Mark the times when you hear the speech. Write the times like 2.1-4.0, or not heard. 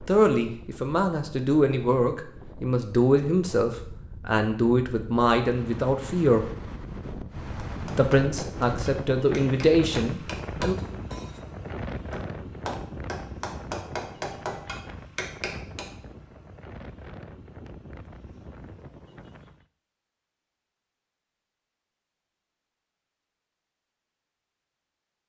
0.1-6.5, 7.8-10.8.